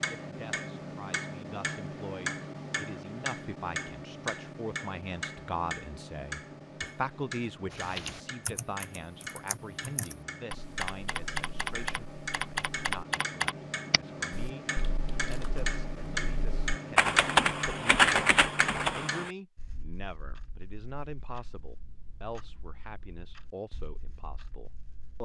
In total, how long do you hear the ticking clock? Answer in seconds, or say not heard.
25 s.